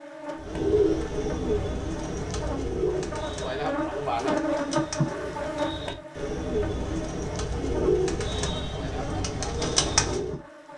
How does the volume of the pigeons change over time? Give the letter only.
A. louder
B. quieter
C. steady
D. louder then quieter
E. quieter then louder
E.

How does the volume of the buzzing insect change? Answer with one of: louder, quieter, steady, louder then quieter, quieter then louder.
louder then quieter.